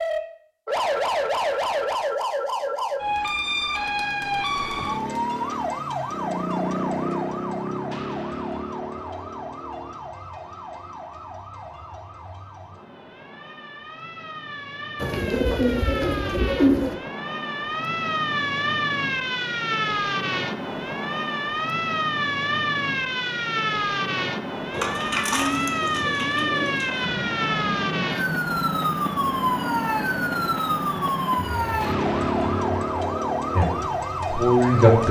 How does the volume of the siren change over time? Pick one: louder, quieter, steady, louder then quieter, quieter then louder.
quieter then louder.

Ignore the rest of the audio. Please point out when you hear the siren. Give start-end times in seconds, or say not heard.
0.0-35.0.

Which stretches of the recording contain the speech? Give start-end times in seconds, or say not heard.
33.5-35.0.